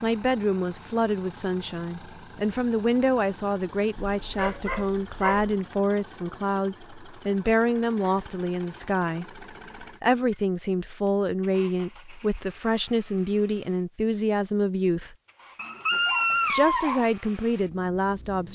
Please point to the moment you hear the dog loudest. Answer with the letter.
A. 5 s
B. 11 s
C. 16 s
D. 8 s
C.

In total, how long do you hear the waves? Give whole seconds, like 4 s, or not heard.
not heard.